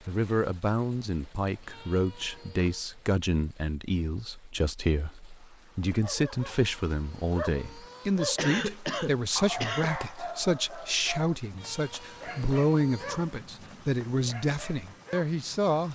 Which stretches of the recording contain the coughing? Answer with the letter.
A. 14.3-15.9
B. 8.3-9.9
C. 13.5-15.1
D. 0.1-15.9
B.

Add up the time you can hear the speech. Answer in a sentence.
The speech can be heard for 16 seconds in total.